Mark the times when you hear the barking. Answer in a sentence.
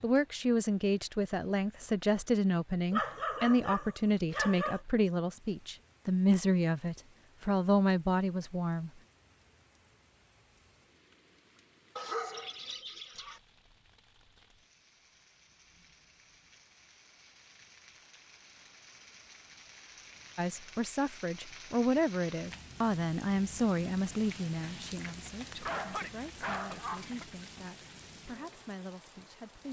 You can hear the barking from 2.9 to 4.8 s, from 11.9 to 13.4 s and from 25.5 to 27.3 s.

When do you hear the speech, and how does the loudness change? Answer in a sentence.
You can hear the speech from 0.0 to 8.9 s, at a steady volume; and from 20.4 to 29.6 s, getting quieter.